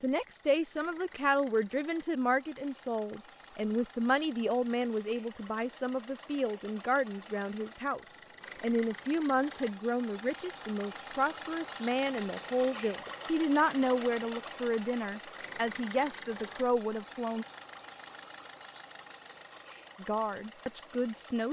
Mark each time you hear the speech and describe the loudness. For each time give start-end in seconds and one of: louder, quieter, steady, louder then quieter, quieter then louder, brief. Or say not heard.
0.0-17.4 steady
20.0-21.4 brief.